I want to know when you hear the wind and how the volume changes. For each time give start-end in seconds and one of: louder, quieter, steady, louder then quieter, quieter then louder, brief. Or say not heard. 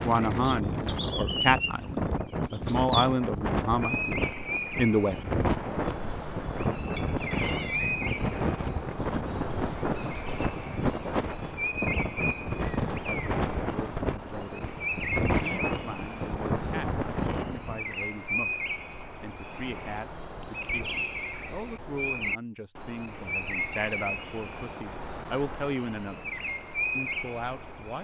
0.0-17.9 steady.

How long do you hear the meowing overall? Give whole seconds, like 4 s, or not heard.
2 s.